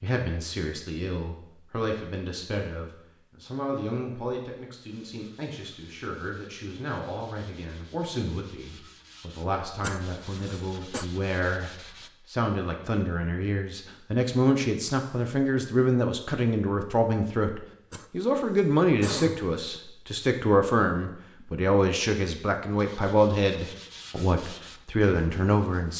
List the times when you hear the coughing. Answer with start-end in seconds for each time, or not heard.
9.8-11.1, 17.9-19.6.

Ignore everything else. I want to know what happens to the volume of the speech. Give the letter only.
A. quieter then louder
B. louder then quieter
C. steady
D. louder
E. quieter
D.